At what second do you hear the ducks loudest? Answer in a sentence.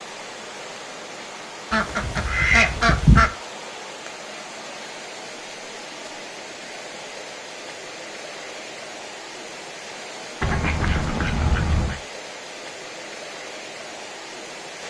The loudest moment of the ducks is at 3 seconds.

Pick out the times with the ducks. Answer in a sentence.
You can hear the ducks from 1.7 to 3.3 s and from 10.4 to 12.0 s.